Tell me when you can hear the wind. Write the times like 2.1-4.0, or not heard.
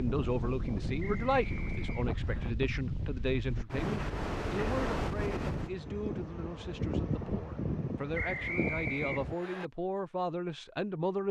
0.0-9.3.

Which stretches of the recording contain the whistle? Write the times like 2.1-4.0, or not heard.
1.0-2.5, 8.1-9.7.